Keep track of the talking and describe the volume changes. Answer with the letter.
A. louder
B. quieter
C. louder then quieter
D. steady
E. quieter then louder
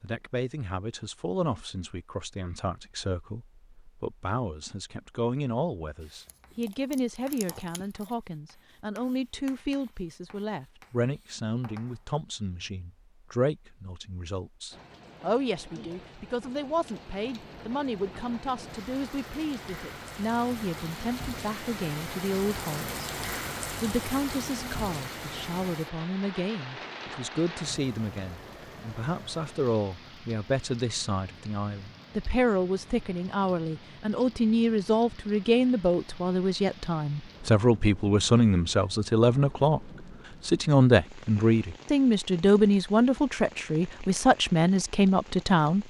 A.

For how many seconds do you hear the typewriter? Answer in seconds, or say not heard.
not heard.